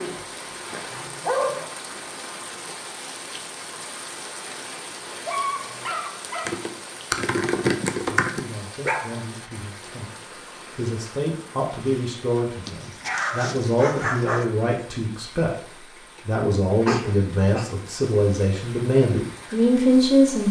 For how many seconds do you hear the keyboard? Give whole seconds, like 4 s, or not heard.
2 s.